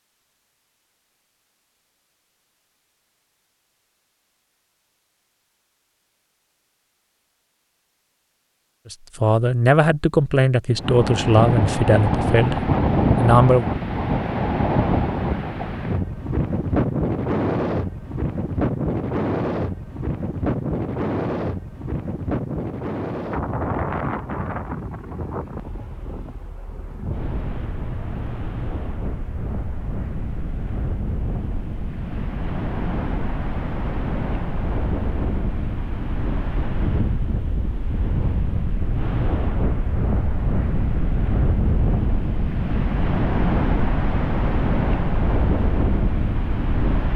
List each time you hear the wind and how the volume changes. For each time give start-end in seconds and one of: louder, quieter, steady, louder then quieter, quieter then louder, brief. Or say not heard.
10.8-47.1 quieter then louder.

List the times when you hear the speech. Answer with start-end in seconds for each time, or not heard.
8.9-13.8.